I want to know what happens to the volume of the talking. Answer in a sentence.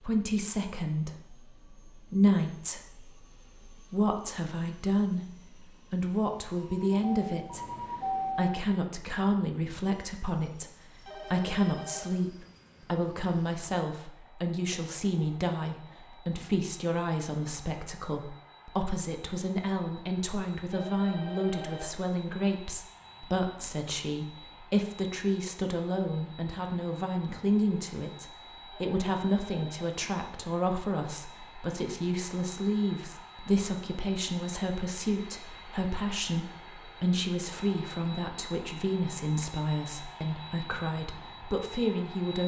The volume of the talking stays about the same.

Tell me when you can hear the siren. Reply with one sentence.
You can hear the siren from 6.5 to 8.7 s.